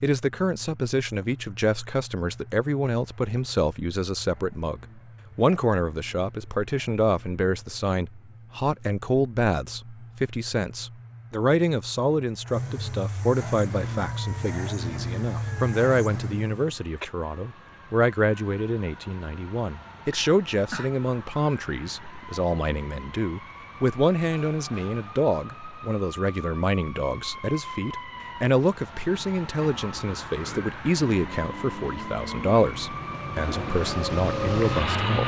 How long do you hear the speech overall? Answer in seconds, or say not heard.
35 s.